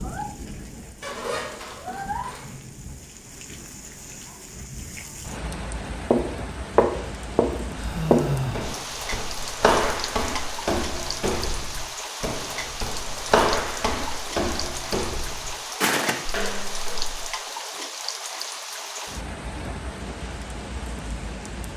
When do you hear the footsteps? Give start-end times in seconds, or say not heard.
6.1-17.2.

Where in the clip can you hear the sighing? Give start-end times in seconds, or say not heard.
7.8-8.8.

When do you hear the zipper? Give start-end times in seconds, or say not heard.
1.0-2.5.